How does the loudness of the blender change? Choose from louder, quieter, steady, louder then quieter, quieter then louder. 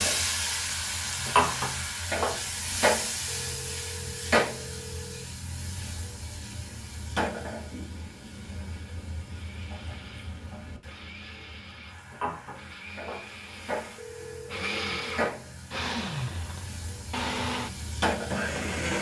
louder.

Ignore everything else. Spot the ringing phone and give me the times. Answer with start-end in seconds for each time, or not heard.
3.2-5.2, 13.9-15.1.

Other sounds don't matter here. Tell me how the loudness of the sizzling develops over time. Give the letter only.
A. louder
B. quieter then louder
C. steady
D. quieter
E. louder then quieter
B.